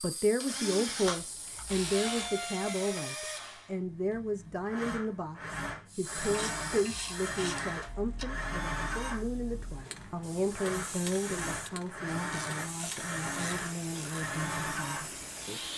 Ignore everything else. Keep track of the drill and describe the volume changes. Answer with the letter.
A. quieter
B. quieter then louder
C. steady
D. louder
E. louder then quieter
C.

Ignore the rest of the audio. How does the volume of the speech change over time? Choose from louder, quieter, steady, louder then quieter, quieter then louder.
quieter.